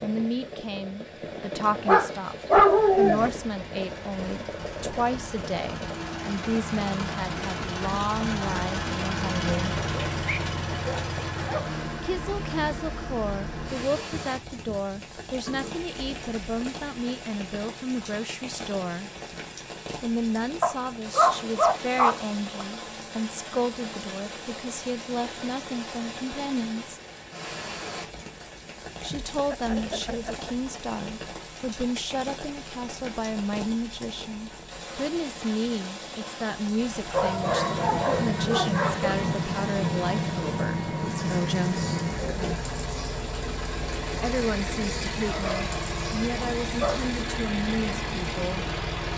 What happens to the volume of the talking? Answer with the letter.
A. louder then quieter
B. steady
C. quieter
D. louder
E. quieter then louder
B.